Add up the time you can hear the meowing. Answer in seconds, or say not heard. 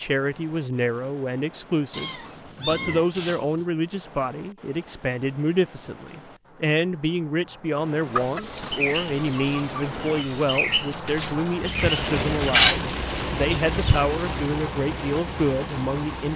2 s.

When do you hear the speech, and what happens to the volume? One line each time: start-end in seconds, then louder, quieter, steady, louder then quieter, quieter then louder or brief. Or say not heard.
0.0-16.3 steady.